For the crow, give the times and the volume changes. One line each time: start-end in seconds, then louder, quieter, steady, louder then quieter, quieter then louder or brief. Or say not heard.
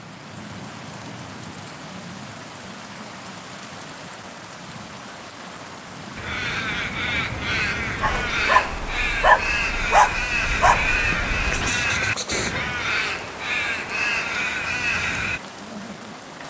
6.2-15.4 steady.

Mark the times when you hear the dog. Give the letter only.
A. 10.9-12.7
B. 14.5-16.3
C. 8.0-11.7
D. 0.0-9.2
C.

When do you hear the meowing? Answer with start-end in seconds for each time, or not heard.
10.9-12.7.